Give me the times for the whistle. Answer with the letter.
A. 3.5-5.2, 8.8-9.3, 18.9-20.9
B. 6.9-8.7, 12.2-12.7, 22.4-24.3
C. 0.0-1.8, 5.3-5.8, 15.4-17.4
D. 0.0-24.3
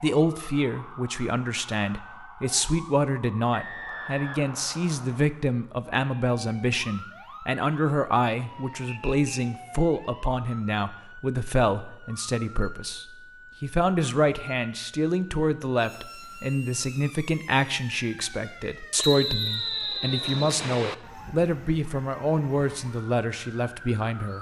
A.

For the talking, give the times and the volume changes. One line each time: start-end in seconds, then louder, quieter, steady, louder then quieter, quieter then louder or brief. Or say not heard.
0.0-24.3 steady.